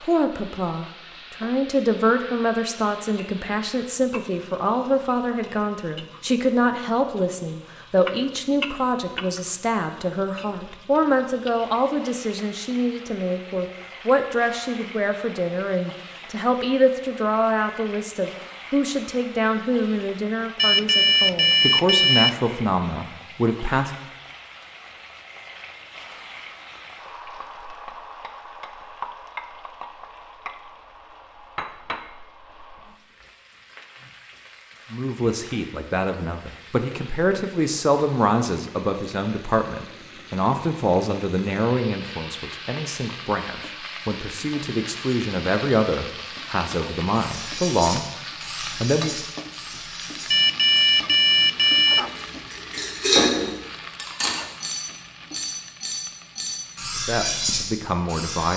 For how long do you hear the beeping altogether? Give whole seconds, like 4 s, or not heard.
4 s.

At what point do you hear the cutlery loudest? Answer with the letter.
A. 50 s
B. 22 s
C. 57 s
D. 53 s
D.